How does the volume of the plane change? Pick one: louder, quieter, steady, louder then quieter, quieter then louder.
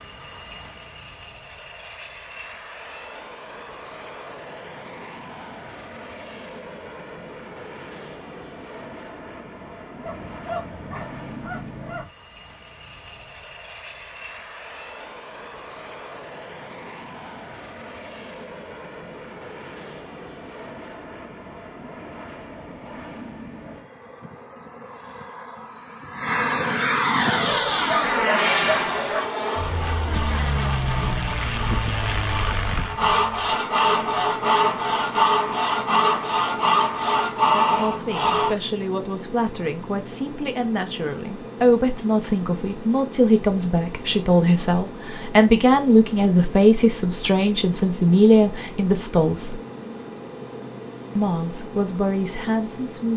louder then quieter.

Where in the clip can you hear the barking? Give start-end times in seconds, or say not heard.
10.1-12.1, 27.4-29.2.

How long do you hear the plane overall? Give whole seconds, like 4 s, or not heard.
53 s.